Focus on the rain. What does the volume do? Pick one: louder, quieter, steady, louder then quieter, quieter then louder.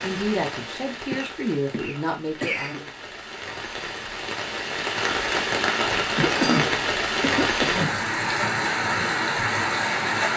louder.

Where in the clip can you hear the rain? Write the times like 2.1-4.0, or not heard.
0.0-10.3.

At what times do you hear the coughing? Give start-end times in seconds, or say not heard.
1.1-2.8, 6.2-8.0.